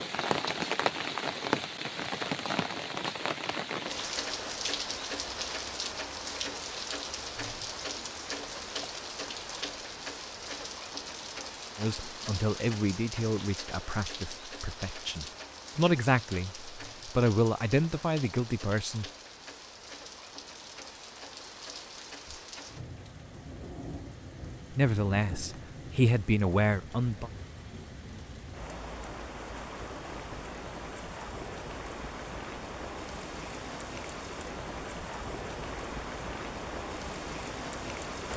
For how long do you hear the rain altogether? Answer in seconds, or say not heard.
38 s.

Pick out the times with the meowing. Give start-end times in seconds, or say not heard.
not heard.